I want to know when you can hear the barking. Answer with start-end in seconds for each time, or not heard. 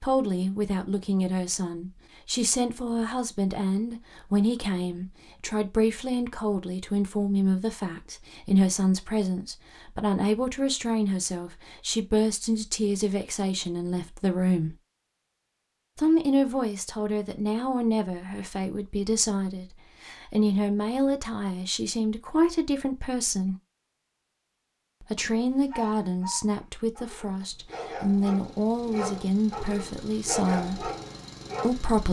25.6-31.8.